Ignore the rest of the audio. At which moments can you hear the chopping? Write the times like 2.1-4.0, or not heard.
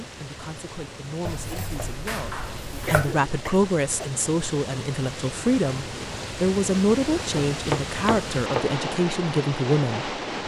1.2-3.2, 7.3-8.8.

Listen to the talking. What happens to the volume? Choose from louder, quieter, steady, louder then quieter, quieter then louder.
louder.